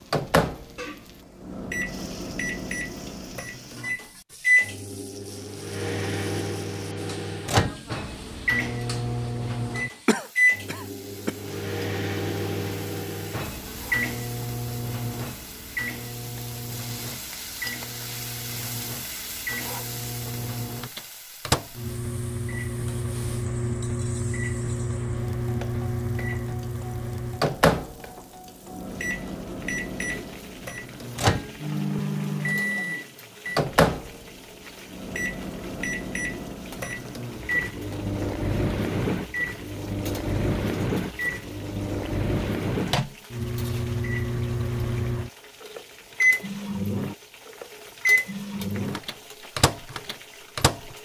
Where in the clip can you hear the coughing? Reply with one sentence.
The coughing can be heard from 10.1 to 11.3 s.